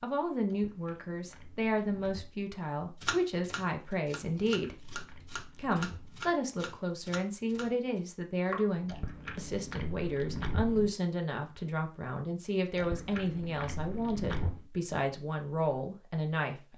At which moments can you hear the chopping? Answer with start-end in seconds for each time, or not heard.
3.0-8.7.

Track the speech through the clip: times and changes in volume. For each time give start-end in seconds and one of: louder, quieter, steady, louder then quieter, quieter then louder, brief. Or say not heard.
0.0-16.7 steady.